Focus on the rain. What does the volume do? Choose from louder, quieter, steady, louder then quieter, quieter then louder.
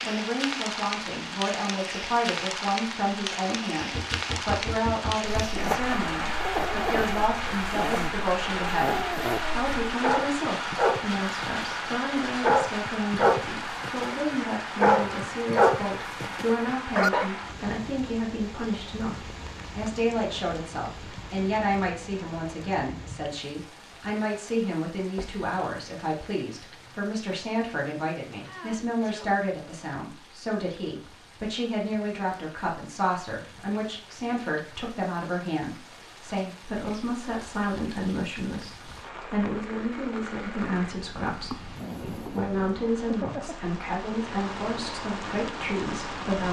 quieter then louder.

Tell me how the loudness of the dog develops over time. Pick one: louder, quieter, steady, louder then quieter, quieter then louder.
louder.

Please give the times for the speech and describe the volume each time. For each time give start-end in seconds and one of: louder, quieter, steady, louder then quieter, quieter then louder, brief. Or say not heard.
0.0-46.4 steady.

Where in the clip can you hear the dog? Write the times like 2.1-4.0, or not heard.
5.4-17.3.